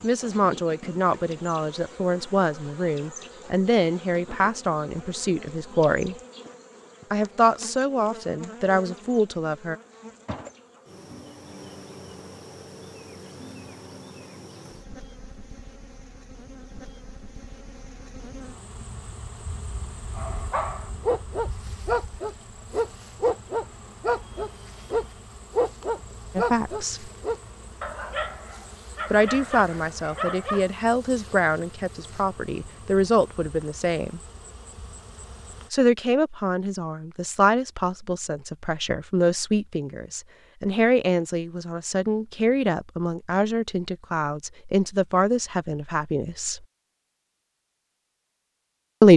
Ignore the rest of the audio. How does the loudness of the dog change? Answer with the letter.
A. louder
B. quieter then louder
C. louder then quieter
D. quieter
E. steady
D.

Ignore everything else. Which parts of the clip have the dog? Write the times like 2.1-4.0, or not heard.
20.1-30.7.